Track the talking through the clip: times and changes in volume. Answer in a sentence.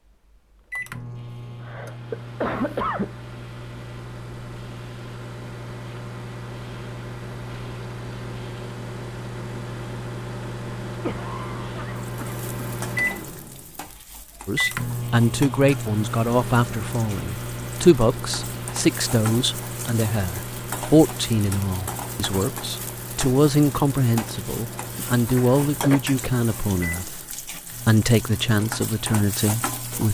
You can hear the talking from 14.4 to 30.0 s, at a steady volume.